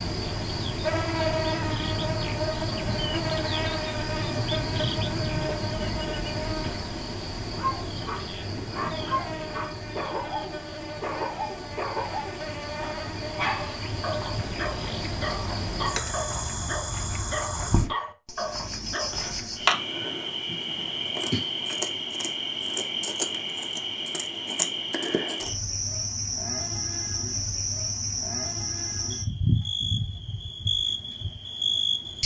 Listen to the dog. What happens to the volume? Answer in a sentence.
The volume of the dog stays about the same.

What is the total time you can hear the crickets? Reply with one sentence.
The crickets can be heard for 32 seconds in total.